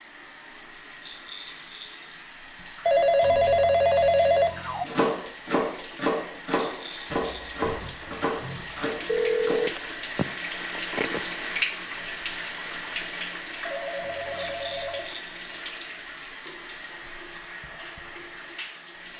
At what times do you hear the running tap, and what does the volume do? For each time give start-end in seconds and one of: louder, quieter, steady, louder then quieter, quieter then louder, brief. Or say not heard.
0.0-19.1 louder then quieter.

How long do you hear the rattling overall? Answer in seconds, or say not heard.
3 s.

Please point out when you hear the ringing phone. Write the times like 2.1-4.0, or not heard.
2.9-4.8, 9.1-11.2, 13.7-15.1.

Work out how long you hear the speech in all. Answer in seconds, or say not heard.
not heard.